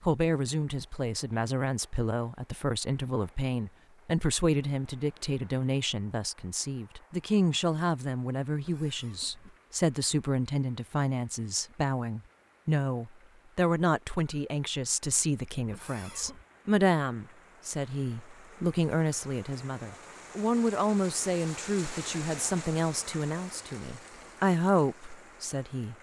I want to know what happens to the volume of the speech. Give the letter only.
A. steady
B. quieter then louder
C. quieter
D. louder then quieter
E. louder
A.